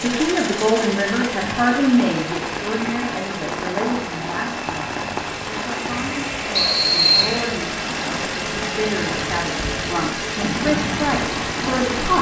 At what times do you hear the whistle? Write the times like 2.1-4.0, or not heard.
6.5-7.3.